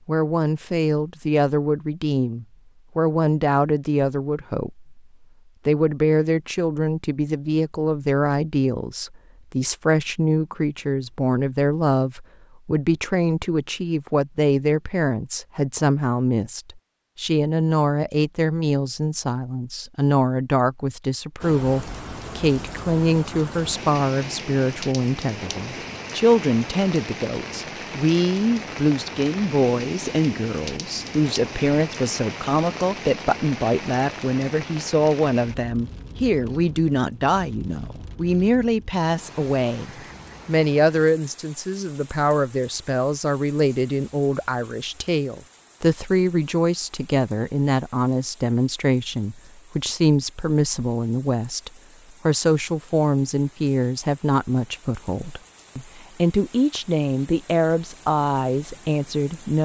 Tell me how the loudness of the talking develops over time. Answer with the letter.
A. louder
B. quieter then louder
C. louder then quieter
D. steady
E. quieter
D.